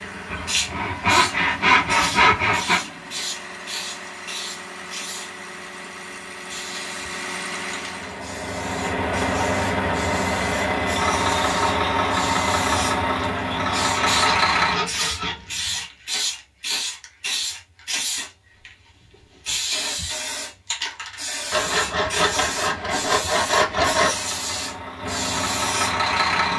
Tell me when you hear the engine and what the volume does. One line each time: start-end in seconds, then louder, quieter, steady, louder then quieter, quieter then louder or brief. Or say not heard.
0.0-14.8 louder
23.9-26.5 brief.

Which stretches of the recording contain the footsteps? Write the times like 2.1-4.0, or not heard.
not heard.